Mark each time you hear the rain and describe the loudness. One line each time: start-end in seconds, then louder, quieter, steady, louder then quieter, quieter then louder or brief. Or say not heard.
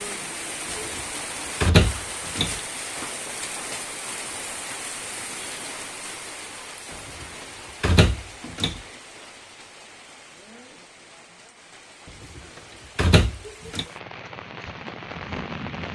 0.0-15.9 quieter then louder.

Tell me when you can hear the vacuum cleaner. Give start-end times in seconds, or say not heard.
not heard.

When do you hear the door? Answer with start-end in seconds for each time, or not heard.
1.6-2.5, 7.2-8.8, 12.3-13.8.